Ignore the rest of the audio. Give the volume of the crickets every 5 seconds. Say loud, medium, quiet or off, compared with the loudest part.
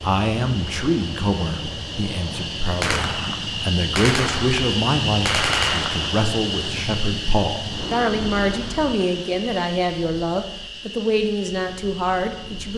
loud, loud, medium.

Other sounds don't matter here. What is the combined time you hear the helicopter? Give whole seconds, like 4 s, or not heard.
not heard.